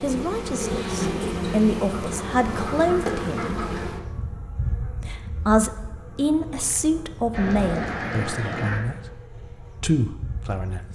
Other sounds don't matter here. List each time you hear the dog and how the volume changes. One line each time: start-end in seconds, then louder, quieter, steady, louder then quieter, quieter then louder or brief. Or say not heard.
not heard.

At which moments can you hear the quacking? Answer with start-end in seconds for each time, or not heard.
1.9-3.9, 7.3-8.8.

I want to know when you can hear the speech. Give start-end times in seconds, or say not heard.
0.0-3.6, 5.0-10.9.